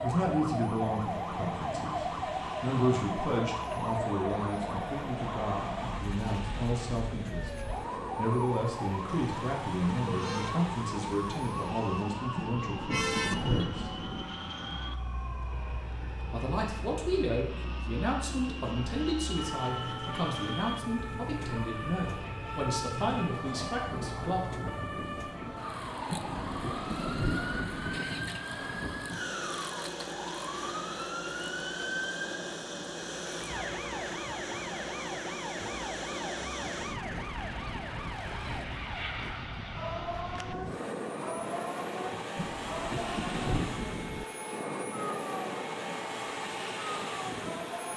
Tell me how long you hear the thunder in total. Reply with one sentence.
The thunder can be heard for 6 seconds in total.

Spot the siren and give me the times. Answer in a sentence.
The siren can be heard from 0.0 to 47.9 s.